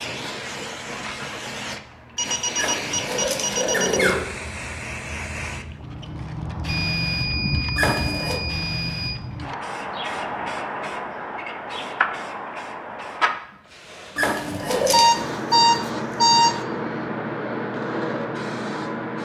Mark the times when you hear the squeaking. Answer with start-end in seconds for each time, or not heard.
2.5-4.3, 7.8-8.4, 14.2-15.2.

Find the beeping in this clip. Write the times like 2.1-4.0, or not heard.
2.1-4.2, 6.7-9.2, 14.9-16.6.